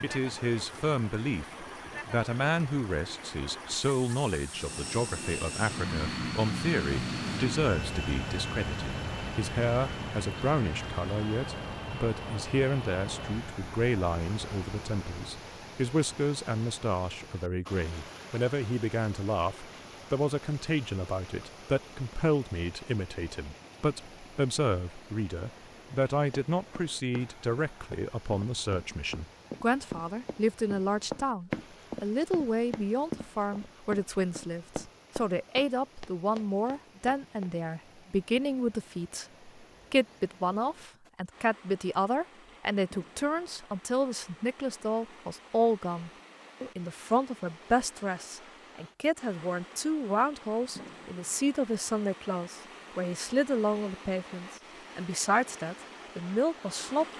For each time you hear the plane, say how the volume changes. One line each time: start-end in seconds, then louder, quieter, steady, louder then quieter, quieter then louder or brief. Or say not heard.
4.5-15.2 quieter.